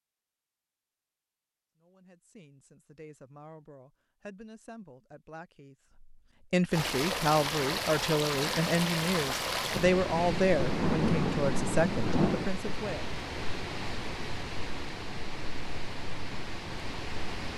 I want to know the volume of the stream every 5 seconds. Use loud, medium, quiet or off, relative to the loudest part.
off, loud, medium, medium.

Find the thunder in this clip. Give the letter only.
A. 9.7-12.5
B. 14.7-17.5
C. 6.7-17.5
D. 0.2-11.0
A.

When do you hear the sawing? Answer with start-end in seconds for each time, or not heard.
not heard.